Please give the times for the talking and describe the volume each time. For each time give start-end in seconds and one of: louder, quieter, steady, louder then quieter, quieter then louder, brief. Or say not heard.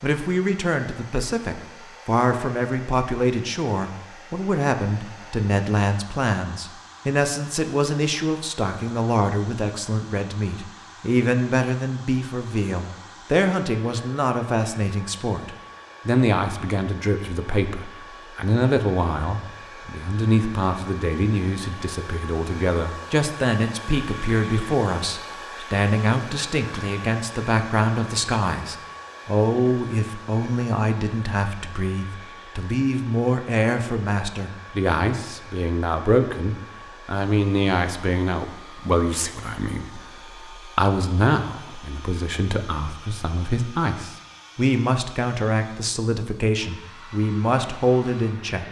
0.0-48.6 steady.